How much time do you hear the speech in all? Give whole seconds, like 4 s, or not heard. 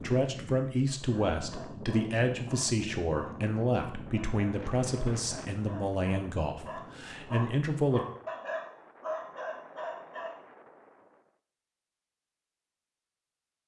8 s.